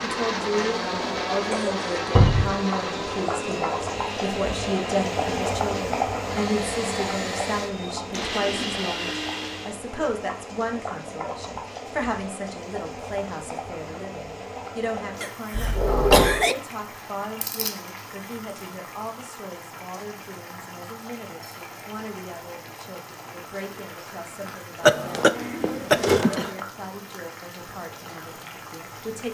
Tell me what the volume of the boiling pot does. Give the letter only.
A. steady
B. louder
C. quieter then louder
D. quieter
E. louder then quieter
D.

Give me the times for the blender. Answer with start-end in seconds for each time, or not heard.
0.0-9.8.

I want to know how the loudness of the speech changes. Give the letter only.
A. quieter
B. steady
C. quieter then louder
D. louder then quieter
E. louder
A.